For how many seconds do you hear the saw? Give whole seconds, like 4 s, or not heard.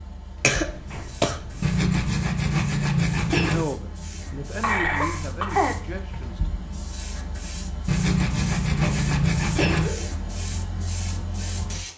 4 s.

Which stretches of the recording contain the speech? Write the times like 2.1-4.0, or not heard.
3.4-6.5.